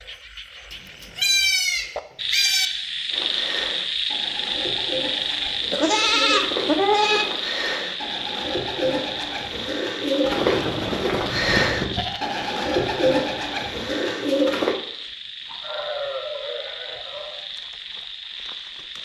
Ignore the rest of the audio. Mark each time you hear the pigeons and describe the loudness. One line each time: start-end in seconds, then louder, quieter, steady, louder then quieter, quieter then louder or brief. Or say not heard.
3.1-14.8 louder.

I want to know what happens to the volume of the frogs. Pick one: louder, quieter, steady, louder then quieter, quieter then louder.
quieter.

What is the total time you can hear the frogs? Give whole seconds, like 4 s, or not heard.
19 s.